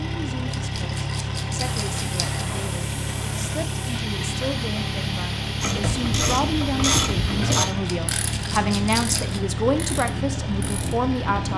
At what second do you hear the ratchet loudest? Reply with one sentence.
The loudest moment of the ratchet is at 7 seconds.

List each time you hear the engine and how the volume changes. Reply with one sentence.
The engine can be heard from 0.0 to 11.5 s, at a steady volume.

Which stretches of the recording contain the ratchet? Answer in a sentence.
The ratchet can be heard from 5.6 to 11.0 s.